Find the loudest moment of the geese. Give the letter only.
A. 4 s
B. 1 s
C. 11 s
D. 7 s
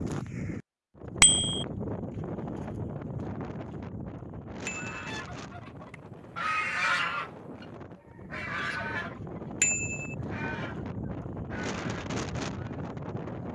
D.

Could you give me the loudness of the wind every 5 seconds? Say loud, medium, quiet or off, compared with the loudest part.
loud, medium, loud.